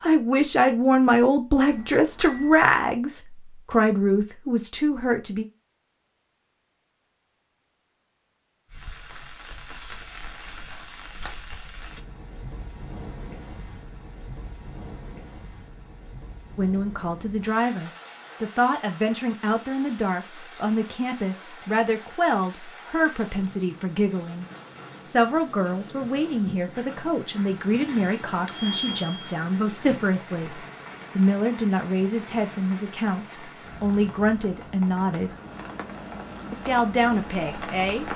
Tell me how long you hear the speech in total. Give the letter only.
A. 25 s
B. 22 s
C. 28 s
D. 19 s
A.